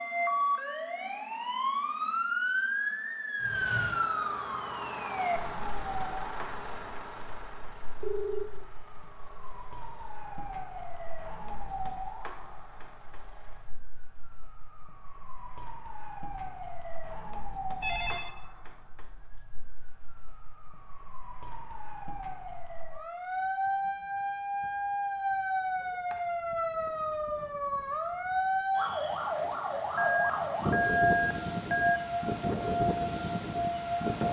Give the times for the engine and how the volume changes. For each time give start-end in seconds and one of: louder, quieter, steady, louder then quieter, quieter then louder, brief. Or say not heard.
3.4-13.8 quieter.